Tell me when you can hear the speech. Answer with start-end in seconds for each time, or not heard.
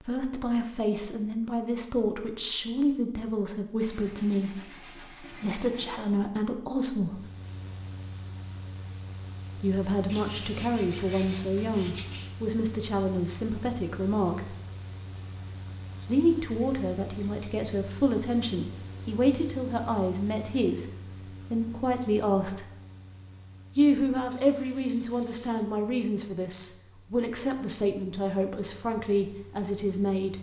0.0-7.2, 9.6-14.6, 16.1-20.9, 21.5-22.6, 23.8-30.3.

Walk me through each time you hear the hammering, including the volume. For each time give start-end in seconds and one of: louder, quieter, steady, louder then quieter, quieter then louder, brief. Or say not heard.
not heard.